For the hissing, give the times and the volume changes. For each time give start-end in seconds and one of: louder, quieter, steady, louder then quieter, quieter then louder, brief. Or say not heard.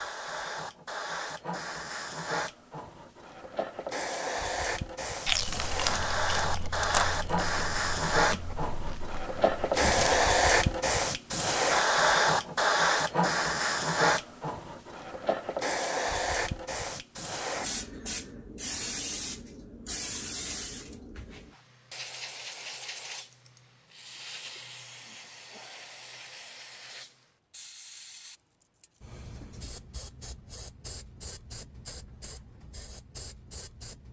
0.0-34.0 louder then quieter.